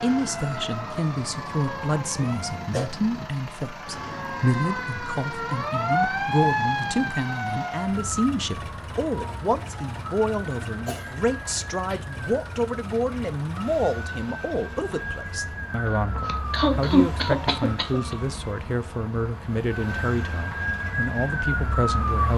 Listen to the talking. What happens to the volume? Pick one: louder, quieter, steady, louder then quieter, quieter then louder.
steady.